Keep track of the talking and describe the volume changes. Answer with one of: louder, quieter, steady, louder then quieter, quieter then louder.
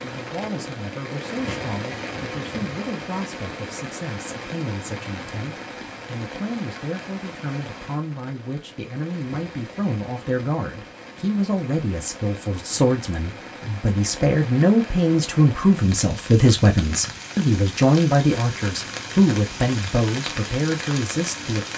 louder.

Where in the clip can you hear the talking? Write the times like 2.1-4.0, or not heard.
0.0-21.7.